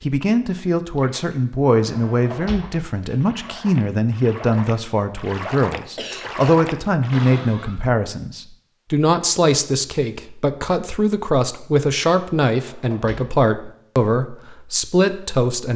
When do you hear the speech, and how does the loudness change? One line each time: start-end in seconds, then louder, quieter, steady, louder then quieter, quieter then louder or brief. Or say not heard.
0.0-15.7 steady.